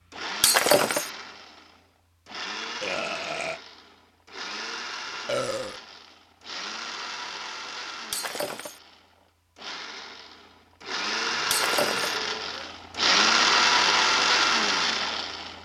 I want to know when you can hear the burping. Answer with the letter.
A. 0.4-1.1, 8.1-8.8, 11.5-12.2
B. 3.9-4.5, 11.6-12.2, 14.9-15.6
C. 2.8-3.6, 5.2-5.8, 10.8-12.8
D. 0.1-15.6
C.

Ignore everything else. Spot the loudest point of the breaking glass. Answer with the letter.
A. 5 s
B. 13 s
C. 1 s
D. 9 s
C.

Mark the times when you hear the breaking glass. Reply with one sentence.
The breaking glass can be heard from 0.4 to 1.1 s, from 8.1 to 8.8 s and from 11.5 to 12.2 s.